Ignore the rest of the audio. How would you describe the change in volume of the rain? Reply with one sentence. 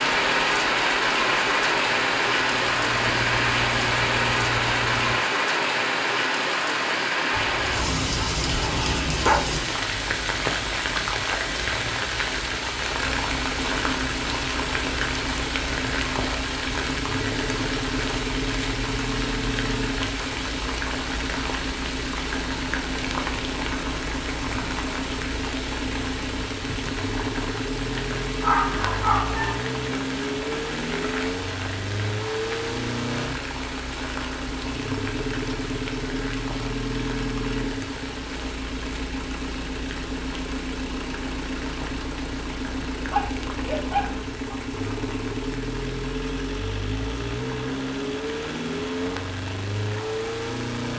The volume of the rain goes down.